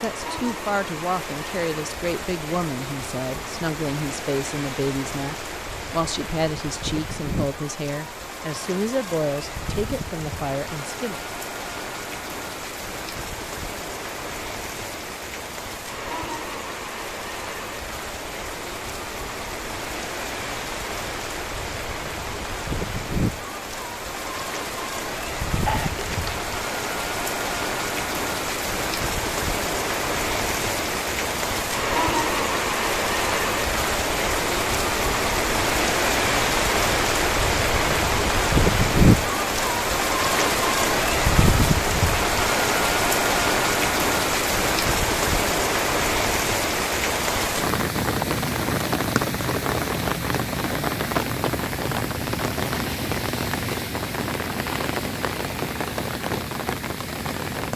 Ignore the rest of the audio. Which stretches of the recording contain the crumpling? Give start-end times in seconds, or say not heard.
25.6-26.5.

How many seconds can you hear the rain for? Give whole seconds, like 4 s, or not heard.
58 s.